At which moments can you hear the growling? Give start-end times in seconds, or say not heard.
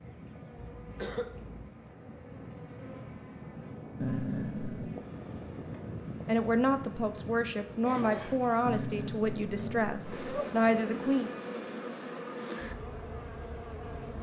4.0-5.0, 8.7-10.5.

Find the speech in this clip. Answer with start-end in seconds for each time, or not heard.
6.2-11.3.